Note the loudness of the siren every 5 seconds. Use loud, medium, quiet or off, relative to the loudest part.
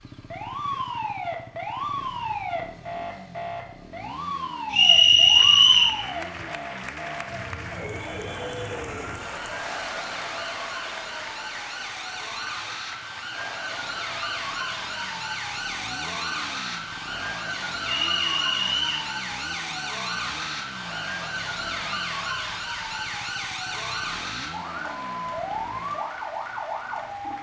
loud, medium, loud, loud, loud, loud.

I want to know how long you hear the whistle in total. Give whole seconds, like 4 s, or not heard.
2 s.